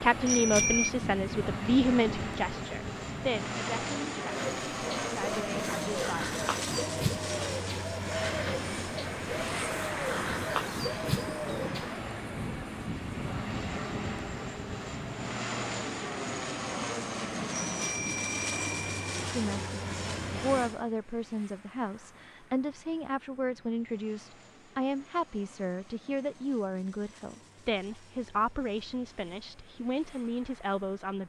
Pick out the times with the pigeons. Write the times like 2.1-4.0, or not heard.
4.2-12.1.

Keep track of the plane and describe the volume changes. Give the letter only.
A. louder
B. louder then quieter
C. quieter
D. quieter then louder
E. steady
C.